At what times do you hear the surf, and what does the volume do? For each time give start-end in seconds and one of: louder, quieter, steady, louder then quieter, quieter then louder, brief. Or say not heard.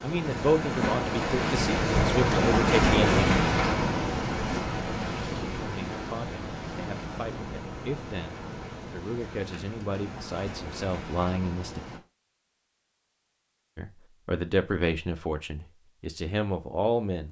0.0-12.0 quieter.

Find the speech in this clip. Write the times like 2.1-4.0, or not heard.
0.0-3.4, 5.5-11.8, 13.8-17.2.